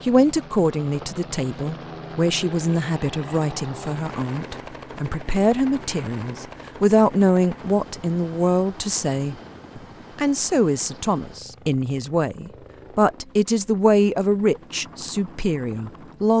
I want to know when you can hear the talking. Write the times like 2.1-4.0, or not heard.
0.0-16.3.